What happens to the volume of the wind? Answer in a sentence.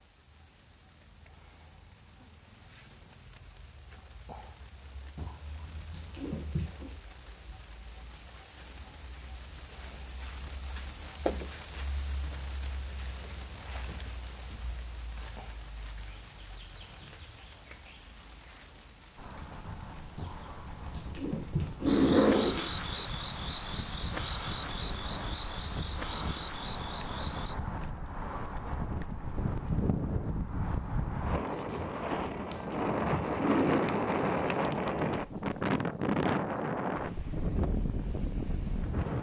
The loudness of the wind goes up.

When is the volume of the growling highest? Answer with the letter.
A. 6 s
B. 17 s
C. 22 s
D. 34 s
C.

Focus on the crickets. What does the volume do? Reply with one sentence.
The loudness of the crickets goes up, then down.